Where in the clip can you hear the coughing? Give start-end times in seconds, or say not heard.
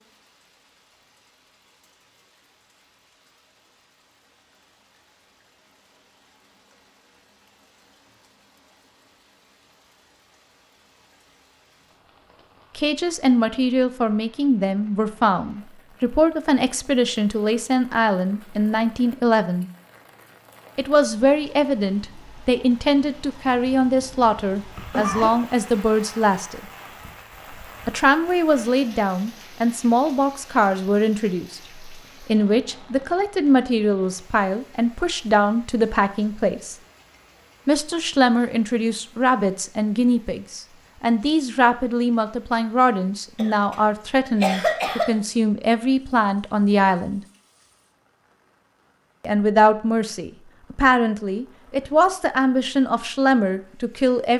23.4-25.4, 43.4-45.1.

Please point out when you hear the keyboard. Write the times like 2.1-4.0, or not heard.
not heard.